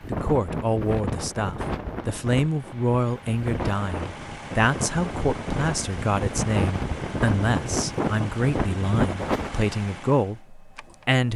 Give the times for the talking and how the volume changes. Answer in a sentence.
You can hear the talking from 0.1 to 11.3 s, at a steady volume.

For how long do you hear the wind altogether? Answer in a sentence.
You can hear the wind for 10 seconds altogether.